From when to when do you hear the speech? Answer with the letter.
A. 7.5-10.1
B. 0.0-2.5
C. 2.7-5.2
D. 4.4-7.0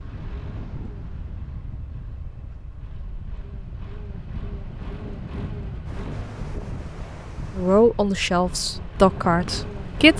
A.